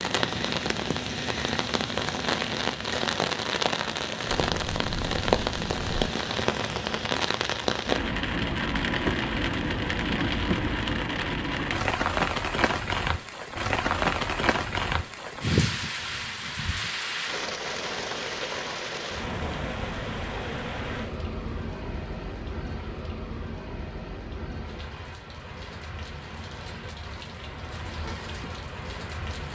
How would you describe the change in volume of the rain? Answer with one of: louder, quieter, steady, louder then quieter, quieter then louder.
quieter.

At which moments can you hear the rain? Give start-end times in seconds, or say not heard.
0.0-29.5.